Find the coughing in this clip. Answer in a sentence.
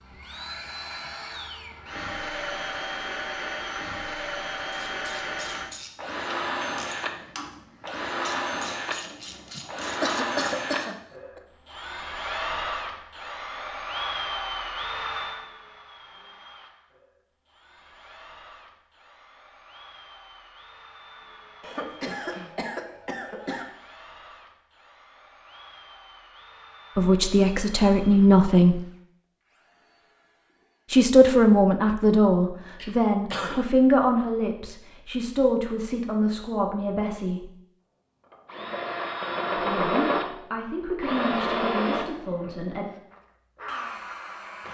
The coughing can be heard from 9.6 to 11.4 s, from 21.6 to 23.6 s and from 32.8 to 33.7 s.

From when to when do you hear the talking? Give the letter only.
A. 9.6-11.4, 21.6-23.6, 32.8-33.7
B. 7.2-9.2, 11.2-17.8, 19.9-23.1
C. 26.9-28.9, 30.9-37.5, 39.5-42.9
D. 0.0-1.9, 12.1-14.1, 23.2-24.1
C.